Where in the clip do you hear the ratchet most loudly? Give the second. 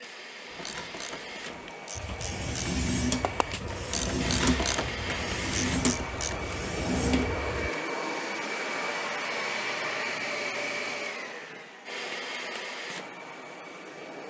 5 s.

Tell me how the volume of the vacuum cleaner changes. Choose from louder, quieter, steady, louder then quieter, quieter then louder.
louder then quieter.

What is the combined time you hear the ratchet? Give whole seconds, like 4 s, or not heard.
6 s.